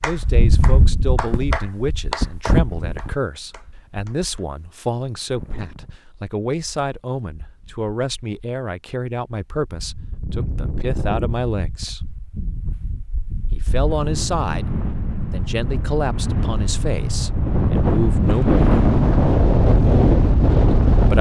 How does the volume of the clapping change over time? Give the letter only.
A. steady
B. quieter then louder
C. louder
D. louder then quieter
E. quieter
D.